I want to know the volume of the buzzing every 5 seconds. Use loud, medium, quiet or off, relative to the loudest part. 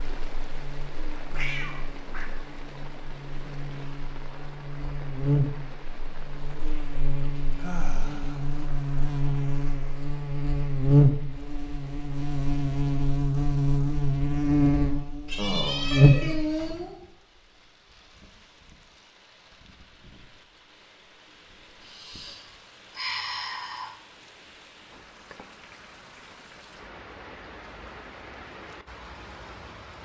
quiet, medium, loud, loud, off, off.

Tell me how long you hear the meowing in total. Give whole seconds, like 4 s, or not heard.
3 s.